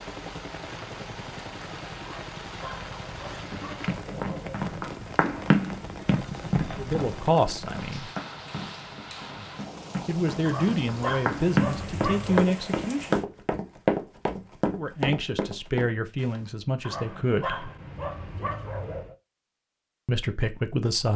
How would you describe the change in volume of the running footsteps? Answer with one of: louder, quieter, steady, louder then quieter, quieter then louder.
quieter then louder.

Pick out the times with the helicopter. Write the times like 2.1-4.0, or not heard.
0.0-7.3.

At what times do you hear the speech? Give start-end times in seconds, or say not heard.
6.8-8.1, 10.1-13.2, 14.8-17.7, 20.1-21.1.